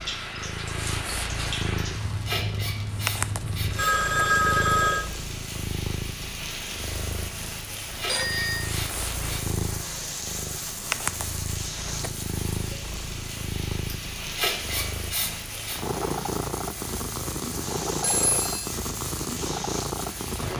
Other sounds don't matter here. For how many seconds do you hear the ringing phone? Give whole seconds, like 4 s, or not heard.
3 s.